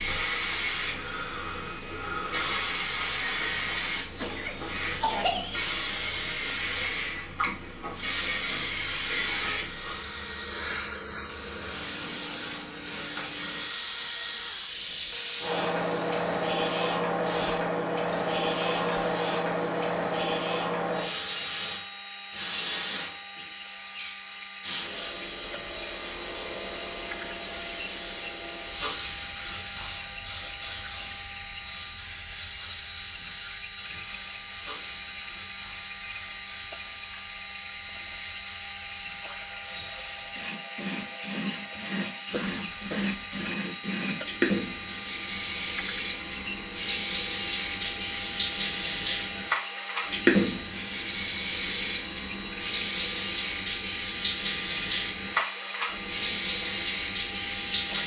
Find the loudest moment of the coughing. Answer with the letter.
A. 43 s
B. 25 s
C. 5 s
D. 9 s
C.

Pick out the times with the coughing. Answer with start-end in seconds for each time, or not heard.
4.0-5.5, 42.3-43.5.